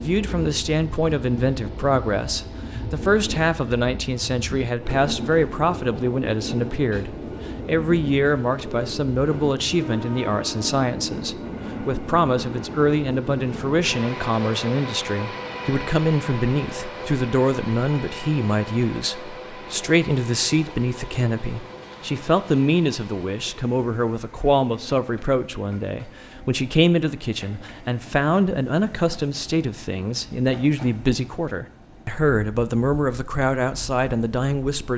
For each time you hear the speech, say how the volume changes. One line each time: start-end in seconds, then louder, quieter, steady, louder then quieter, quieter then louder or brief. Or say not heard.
0.0-34.9 steady.